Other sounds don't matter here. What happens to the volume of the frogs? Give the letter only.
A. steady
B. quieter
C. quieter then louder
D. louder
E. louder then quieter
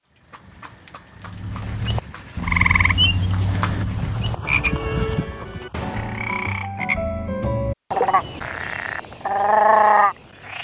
C.